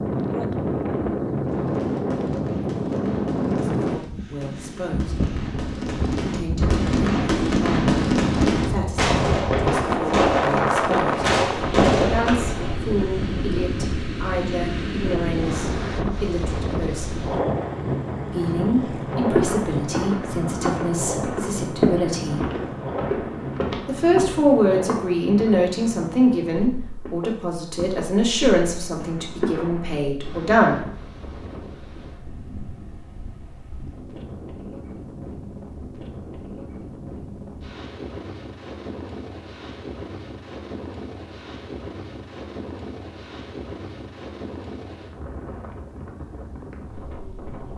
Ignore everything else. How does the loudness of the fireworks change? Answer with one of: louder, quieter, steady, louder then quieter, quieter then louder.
louder.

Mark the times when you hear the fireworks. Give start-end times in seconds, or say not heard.
1.4-12.8.